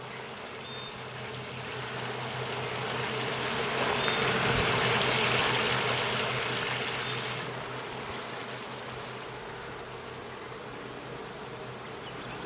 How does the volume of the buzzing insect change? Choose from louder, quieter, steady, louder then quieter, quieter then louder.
louder then quieter.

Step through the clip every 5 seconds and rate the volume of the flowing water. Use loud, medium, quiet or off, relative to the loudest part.
loud, loud, quiet.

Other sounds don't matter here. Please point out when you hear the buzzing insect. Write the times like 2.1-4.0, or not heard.
0.0-12.4.